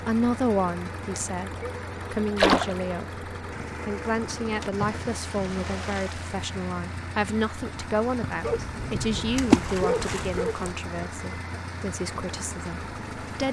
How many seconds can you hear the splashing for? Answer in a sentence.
You can hear the splashing for 4 seconds altogether.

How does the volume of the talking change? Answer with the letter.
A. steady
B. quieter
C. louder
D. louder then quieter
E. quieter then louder
B.